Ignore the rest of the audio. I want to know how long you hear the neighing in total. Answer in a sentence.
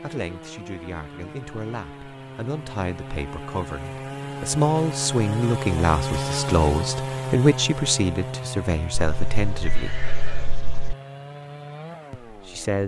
The neighing can be heard for 2 seconds in total.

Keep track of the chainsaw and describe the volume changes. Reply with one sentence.
The loudness of the chainsaw goes up, then down.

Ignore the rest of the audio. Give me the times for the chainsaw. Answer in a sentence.
You can hear the chainsaw from 0.0 to 12.8 s.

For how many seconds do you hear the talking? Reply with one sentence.
You can hear the talking for 11 seconds altogether.